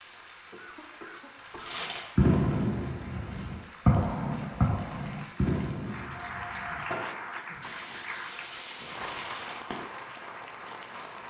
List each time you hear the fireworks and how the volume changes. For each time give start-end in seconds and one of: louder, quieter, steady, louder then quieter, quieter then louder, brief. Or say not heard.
1.6-9.8 quieter.